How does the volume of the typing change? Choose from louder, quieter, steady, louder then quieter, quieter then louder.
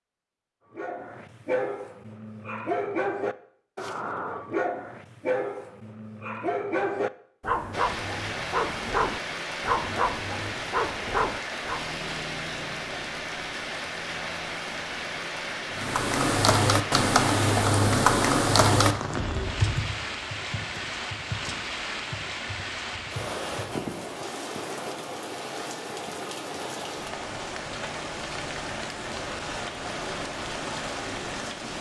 quieter.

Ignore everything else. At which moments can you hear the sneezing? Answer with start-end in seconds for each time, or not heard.
not heard.